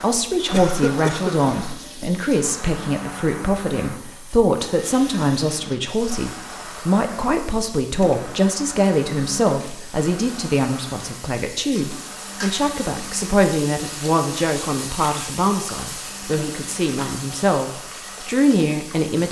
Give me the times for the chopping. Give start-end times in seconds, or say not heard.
not heard.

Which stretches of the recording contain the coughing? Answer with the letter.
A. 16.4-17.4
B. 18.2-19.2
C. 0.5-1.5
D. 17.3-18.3
C.